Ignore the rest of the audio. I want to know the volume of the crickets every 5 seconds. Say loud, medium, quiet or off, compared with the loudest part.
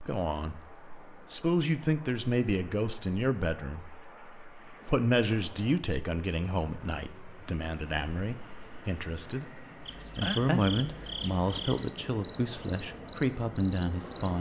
quiet, quiet, loud.